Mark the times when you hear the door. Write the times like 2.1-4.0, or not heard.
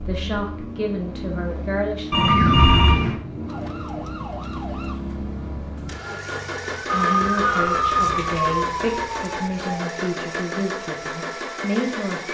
not heard.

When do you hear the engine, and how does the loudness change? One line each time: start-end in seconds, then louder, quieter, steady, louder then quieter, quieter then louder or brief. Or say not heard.
0.0-12.2 steady.